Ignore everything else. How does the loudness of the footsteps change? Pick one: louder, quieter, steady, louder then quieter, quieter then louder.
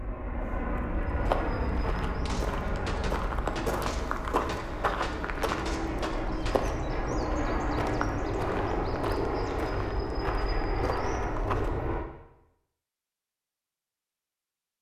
louder then quieter.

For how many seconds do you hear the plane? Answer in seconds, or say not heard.
12 s.